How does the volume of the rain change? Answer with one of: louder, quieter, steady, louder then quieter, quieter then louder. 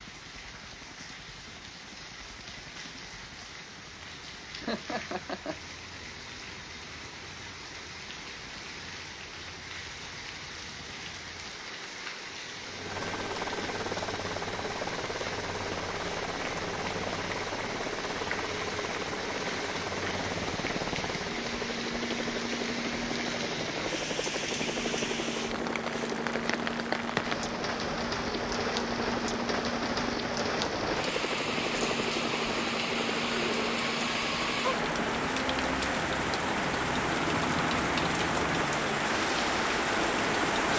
louder.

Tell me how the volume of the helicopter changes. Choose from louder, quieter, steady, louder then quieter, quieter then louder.
louder.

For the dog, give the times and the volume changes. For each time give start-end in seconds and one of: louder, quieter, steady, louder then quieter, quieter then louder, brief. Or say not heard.
not heard.